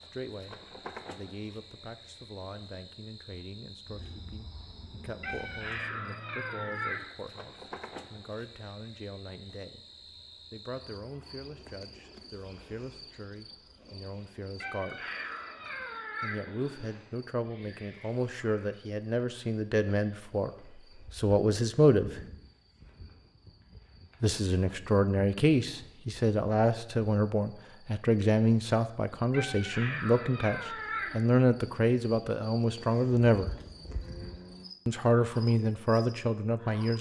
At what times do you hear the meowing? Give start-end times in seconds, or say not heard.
5.2-7.0, 14.6-17.1, 29.3-31.2.